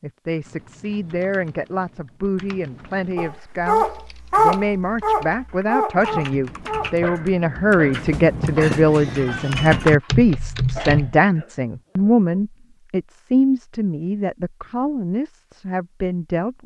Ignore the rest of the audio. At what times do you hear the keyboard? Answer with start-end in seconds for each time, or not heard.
0.4-11.2.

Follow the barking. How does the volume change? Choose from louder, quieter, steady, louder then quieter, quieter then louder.
quieter.